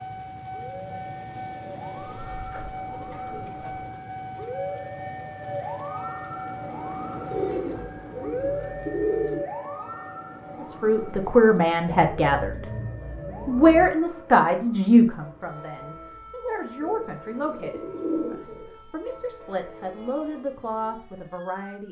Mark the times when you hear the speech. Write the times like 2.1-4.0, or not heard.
10.6-12.7, 13.4-21.8.